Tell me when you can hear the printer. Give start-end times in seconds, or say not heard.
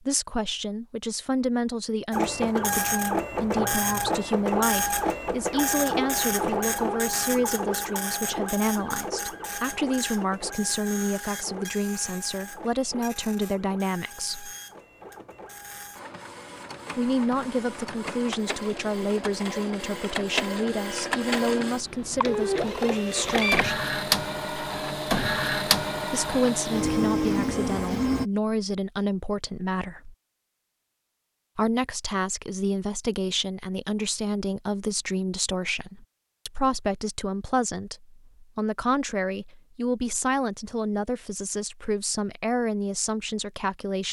2.1-28.2.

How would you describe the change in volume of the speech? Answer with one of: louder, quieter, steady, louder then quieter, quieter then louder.
steady.